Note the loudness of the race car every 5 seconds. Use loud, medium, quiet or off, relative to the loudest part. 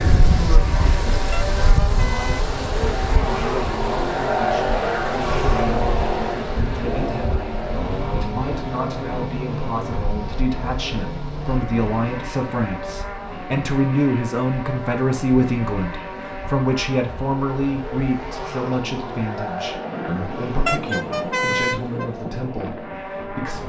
loud, loud, medium, medium, medium.